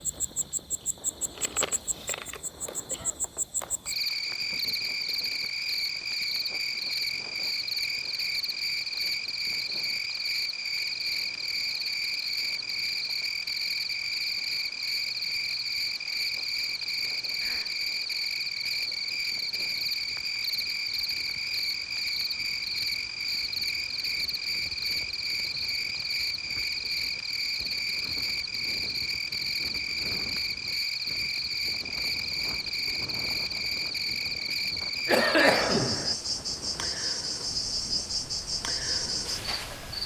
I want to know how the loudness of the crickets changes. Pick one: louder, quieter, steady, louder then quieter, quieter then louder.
steady.